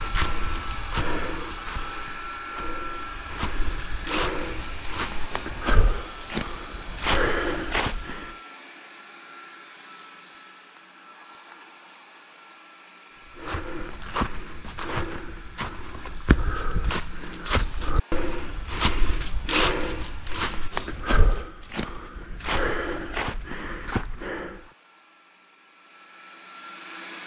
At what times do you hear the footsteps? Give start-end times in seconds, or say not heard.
0.0-8.3, 13.2-24.7.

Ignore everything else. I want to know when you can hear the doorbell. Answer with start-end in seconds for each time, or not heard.
not heard.